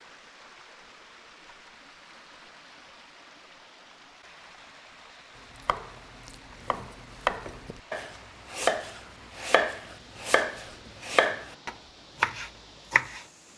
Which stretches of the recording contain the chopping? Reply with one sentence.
You can hear the chopping from 5.5 to 13.2 s.